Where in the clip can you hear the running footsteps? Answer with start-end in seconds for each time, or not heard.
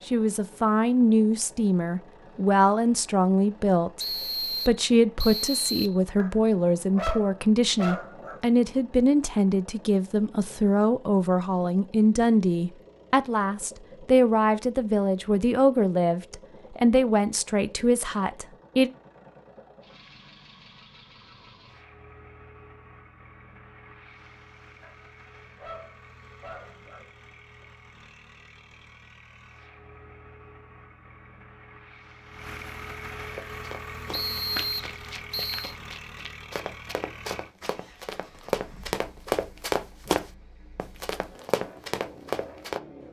33.3-42.8.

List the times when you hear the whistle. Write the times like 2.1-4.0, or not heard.
4.0-6.0, 34.1-35.7.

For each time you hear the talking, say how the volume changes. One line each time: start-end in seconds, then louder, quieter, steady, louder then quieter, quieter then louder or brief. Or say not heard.
0.1-18.9 steady.